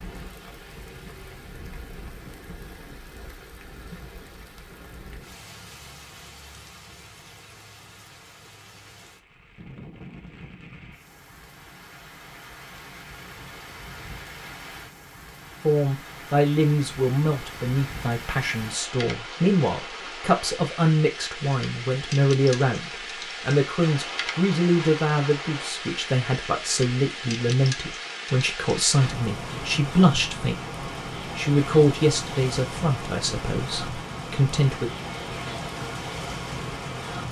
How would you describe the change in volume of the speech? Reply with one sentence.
The loudness of the speech stays about the same.